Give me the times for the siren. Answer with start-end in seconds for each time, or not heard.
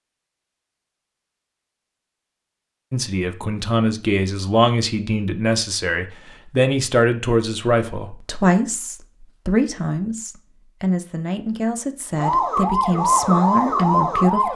12.2-14.5.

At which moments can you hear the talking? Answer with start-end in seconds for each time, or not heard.
2.9-14.5.